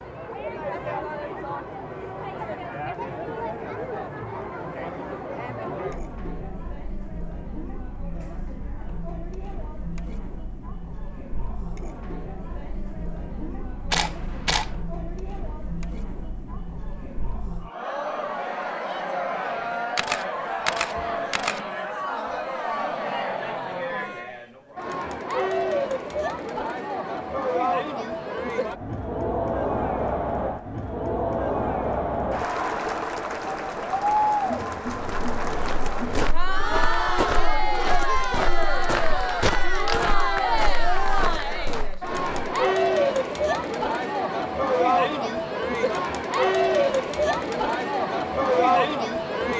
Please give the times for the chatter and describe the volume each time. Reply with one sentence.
The chatter can be heard from 0.0 to 49.5 s, getting louder.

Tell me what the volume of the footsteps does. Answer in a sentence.
The volume of the footsteps stays about the same.